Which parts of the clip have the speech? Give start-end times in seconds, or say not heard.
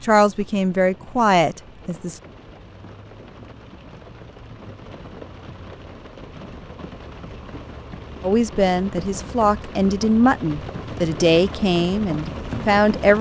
0.0-2.2, 8.2-13.1.